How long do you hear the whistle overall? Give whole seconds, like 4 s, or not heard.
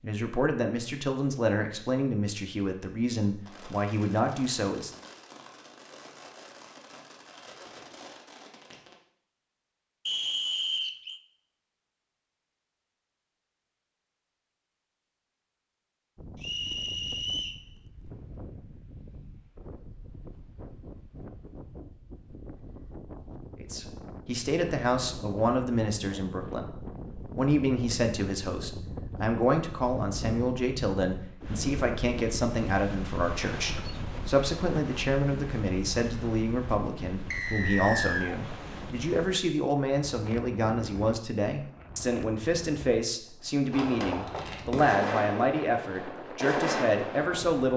3 s.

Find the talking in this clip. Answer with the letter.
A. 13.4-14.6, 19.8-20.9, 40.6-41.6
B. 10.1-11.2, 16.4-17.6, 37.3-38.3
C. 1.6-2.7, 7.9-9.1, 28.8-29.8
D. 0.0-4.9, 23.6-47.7
D.